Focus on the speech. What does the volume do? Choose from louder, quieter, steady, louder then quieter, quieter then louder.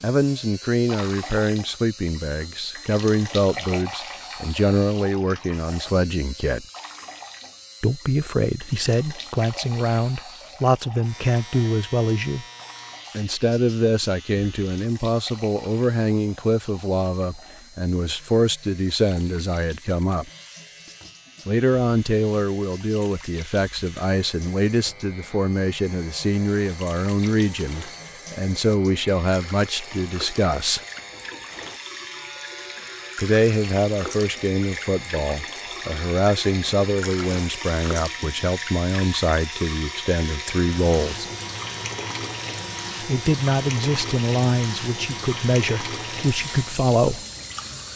steady.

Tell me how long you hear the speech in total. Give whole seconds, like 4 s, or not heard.
40 s.